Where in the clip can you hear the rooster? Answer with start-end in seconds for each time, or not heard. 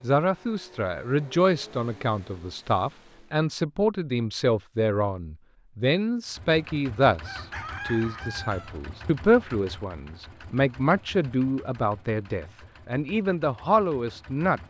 7.2-8.8.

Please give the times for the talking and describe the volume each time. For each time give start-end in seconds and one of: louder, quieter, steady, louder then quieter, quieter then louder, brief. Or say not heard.
0.0-14.6 steady.